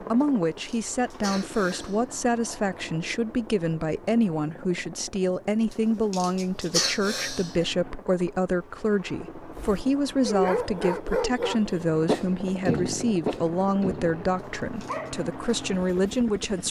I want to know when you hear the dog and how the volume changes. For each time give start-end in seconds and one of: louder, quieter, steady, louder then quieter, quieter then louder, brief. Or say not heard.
9.6-16.2 quieter.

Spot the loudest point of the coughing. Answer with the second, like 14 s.
7 s.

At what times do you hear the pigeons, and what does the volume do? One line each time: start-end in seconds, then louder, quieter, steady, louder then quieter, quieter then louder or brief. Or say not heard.
not heard.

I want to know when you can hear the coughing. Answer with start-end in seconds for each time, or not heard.
0.2-2.1, 5.7-7.7, 14.3-15.1.